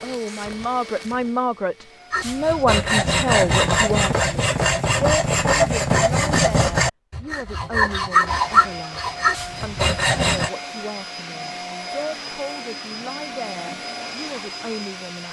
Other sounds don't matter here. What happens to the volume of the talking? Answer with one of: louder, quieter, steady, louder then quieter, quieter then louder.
quieter.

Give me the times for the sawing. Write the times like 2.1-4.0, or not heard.
2.1-10.5.